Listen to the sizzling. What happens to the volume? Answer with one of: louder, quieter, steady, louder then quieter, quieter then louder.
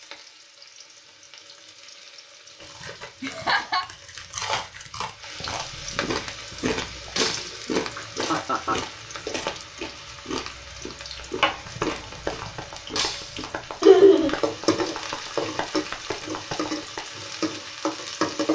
louder.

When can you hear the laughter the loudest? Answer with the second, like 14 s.
14 s.